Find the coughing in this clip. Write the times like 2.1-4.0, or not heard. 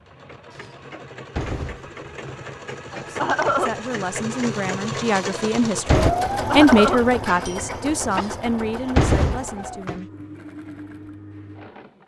2.9-3.8, 6.3-8.2.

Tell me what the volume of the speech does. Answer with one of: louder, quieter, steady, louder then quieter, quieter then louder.
louder then quieter.